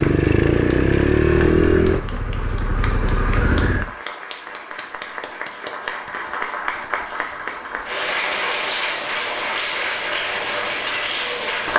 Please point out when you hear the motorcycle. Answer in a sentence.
The motorcycle can be heard from 0.0 to 3.9 s.